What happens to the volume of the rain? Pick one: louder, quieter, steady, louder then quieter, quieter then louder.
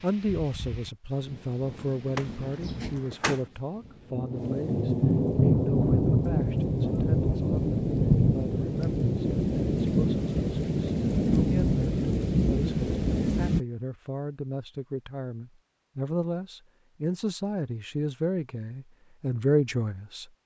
louder.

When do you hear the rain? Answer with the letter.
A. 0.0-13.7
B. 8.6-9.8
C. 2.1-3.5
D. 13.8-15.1
A.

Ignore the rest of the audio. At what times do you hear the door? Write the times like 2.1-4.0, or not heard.
2.1-3.5.